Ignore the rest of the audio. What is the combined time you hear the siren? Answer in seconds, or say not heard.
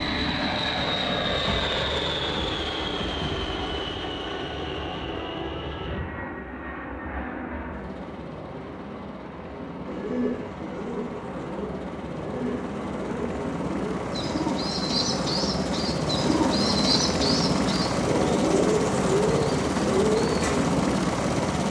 not heard.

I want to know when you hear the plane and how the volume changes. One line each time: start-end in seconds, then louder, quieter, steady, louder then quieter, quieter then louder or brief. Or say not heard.
0.0-21.6 quieter then louder.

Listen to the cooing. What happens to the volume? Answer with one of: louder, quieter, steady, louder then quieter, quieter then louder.
louder.